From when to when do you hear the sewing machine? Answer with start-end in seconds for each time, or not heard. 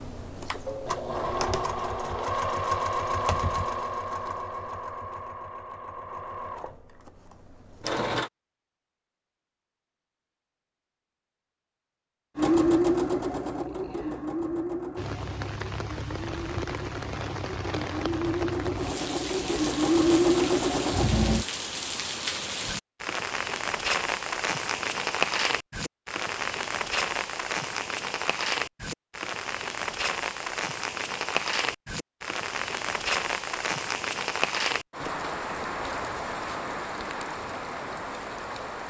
0.0-8.3, 12.3-21.4.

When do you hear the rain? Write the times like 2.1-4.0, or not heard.
14.9-38.8.